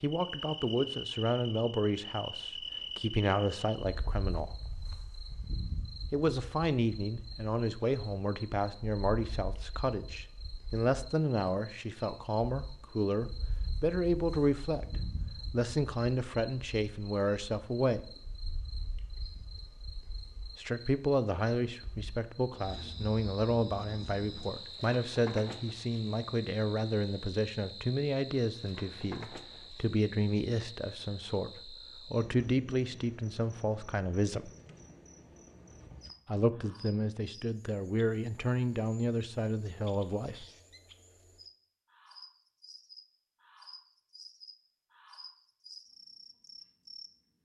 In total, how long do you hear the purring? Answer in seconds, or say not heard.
not heard.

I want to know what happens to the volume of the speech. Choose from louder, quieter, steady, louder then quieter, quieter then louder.
steady.